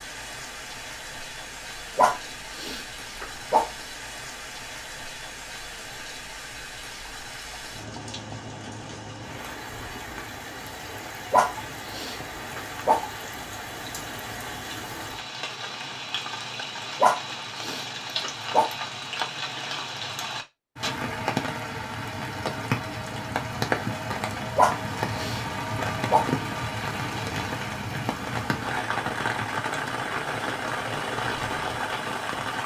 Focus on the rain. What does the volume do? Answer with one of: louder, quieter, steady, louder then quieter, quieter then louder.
louder.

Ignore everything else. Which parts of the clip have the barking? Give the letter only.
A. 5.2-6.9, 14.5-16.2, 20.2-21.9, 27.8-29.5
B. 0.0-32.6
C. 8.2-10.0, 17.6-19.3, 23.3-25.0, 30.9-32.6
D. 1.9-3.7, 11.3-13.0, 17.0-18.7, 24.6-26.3
D.